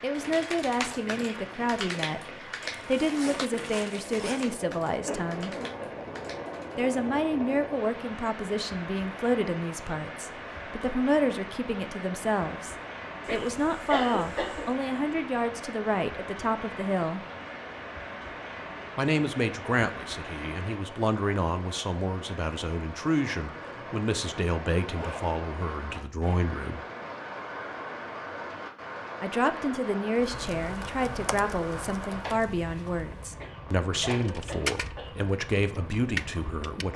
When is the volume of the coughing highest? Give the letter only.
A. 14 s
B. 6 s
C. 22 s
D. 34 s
A.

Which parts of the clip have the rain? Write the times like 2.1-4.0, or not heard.
0.0-36.9.